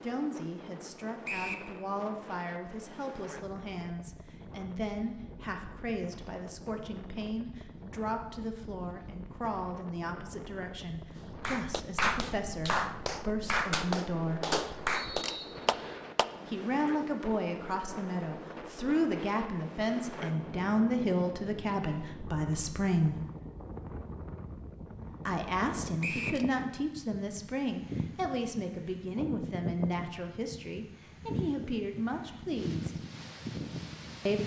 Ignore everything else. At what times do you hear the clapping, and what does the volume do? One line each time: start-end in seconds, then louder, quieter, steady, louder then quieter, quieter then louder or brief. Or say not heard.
11.3-16.4 steady.